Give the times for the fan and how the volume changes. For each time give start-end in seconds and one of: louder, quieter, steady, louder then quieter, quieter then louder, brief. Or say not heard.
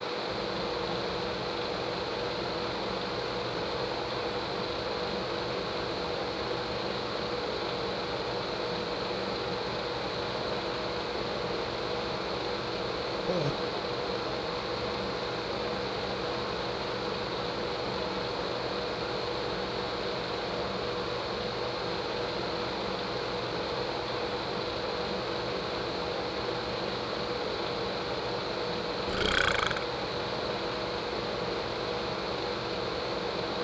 0.0-33.5 steady.